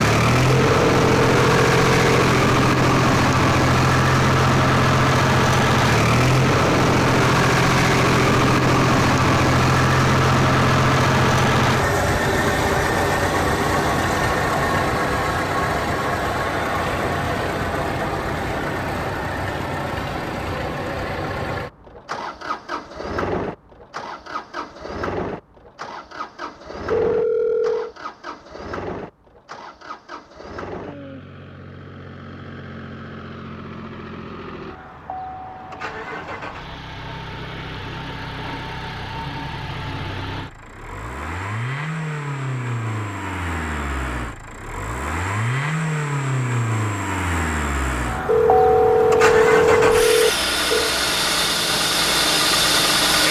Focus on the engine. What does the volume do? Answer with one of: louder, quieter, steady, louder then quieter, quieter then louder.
quieter then louder.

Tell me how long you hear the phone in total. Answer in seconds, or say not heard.
5 s.